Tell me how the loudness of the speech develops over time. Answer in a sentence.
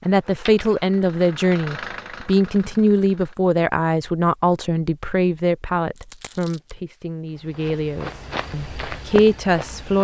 The loudness of the speech goes down, then up.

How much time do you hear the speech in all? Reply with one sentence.
You can hear the speech for 10 seconds altogether.